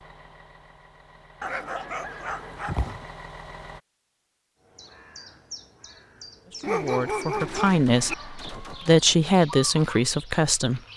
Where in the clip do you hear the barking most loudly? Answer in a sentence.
The volume of the barking peaks at 7 seconds.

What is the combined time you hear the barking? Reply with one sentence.
The barking can be heard for 3 seconds in total.